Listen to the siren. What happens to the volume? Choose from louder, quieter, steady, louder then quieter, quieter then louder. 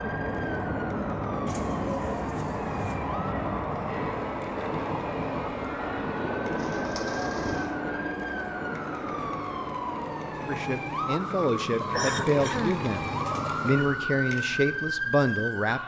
louder.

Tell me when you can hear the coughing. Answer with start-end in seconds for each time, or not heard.
11.9-12.8.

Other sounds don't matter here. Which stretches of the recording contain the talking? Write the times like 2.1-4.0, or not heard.
10.4-15.8.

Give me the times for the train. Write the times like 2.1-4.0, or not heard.
0.0-11.2.